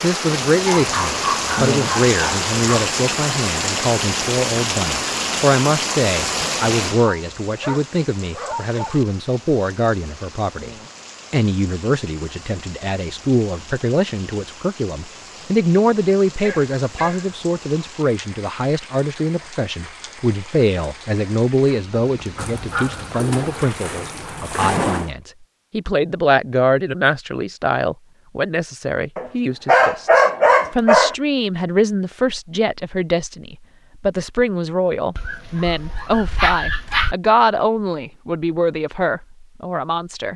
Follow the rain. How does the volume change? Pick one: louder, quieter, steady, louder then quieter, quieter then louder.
quieter.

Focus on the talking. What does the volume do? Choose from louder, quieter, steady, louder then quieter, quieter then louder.
steady.